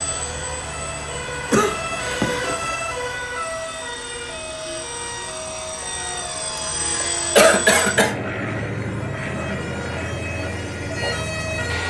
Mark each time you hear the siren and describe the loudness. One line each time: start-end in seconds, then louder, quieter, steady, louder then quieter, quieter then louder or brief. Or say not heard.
0.0-11.8 quieter then louder.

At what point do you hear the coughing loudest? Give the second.
8 s.